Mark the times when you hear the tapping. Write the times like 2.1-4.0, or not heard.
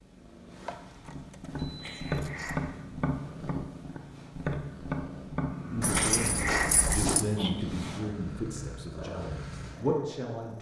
1.1-7.3.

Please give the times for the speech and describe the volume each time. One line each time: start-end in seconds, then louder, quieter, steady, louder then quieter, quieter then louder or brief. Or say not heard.
5.7-10.5 quieter then louder.